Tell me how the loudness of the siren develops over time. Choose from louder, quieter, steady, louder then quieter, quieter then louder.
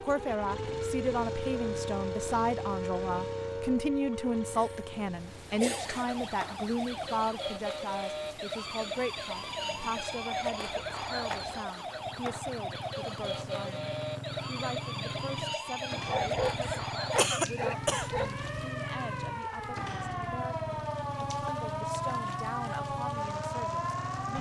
steady.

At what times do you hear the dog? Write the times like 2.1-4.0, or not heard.
16.1-18.4.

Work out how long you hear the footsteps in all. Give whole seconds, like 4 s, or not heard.
not heard.